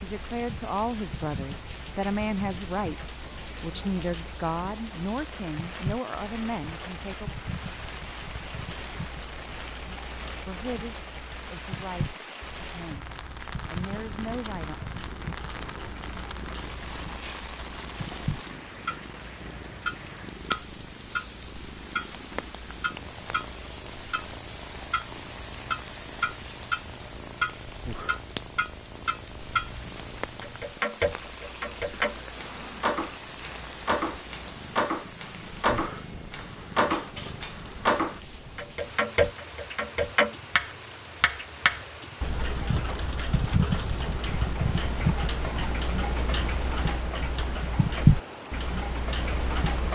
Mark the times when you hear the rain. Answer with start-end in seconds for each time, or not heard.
0.0-49.9.